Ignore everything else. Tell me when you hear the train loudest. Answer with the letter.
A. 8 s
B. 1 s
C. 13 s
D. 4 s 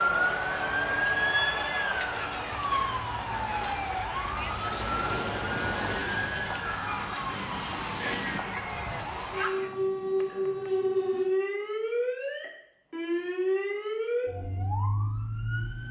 A.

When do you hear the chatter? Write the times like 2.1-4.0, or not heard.
0.0-9.8.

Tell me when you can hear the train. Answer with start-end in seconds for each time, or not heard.
4.7-8.4.